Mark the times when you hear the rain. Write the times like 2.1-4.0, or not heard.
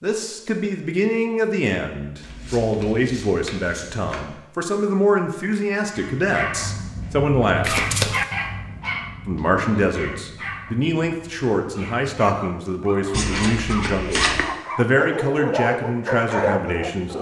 not heard.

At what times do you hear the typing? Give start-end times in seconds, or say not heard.
not heard.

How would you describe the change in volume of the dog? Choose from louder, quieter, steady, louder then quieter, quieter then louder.
quieter then louder.